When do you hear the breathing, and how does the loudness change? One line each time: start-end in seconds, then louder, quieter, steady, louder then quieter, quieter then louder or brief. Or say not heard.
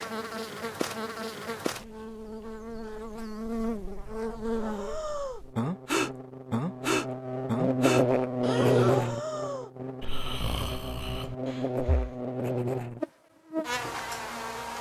4.5-12.2 quieter.